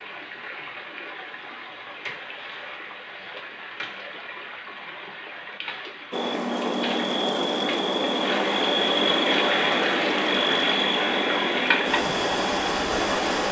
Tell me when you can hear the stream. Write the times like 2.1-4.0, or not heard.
0.0-13.4.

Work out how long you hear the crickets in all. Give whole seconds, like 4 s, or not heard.
7 s.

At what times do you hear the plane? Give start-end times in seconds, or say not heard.
not heard.